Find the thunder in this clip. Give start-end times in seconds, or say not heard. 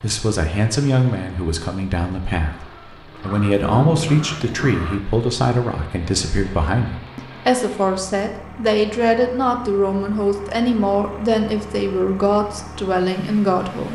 3.4-4.8.